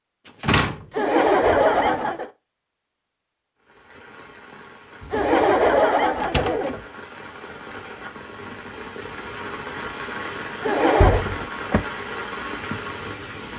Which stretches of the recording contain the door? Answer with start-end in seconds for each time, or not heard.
0.2-2.0, 5.0-6.8, 11.0-11.8.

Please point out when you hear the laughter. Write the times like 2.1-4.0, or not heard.
0.9-2.3, 5.1-6.8, 10.6-11.2.